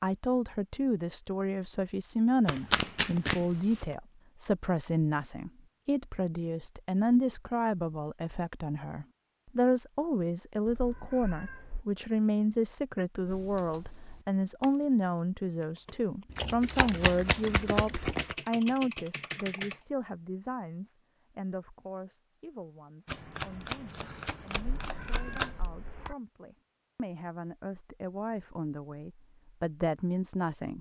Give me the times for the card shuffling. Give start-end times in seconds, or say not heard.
2.5-3.9, 16.4-18.4, 23.1-25.5.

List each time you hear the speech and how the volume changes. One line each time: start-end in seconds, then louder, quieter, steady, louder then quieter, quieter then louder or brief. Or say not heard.
0.0-30.7 quieter.